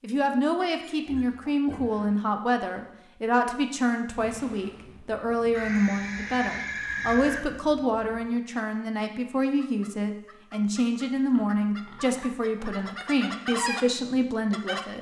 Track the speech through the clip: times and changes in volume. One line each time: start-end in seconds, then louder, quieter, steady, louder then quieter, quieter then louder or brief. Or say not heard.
0.0-14.9 steady.